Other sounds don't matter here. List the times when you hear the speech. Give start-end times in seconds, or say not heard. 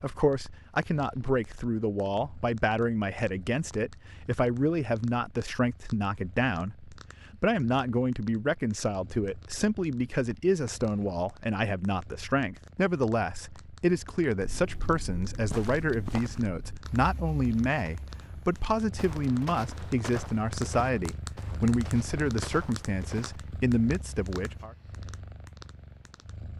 0.0-24.7.